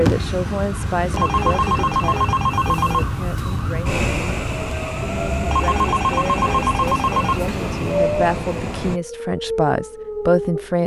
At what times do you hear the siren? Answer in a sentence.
The siren can be heard from 0.0 to 10.8 s.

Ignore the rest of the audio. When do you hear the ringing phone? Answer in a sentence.
The ringing phone can be heard from 1.1 to 3.1 s and from 5.5 to 7.5 s.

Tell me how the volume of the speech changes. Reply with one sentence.
The loudness of the speech goes down, then up.